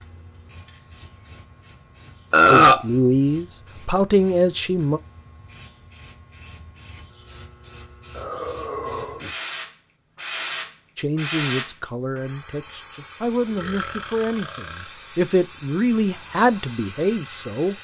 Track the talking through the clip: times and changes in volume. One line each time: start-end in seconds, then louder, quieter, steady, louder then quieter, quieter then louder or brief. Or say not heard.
2.5-5.0 brief
10.9-17.7 louder.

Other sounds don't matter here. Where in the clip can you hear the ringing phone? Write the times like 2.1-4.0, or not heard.
not heard.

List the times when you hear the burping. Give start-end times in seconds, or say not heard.
2.3-2.9, 8.1-9.2, 13.5-14.8.